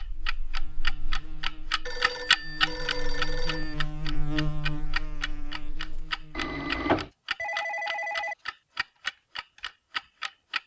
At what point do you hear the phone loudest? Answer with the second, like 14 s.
7 s.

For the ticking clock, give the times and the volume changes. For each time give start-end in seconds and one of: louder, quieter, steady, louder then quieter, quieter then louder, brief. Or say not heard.
0.0-10.6 quieter.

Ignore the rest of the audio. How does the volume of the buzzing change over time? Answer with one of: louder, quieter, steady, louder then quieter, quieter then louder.
louder then quieter.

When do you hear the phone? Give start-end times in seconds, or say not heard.
1.9-3.8, 6.3-8.3.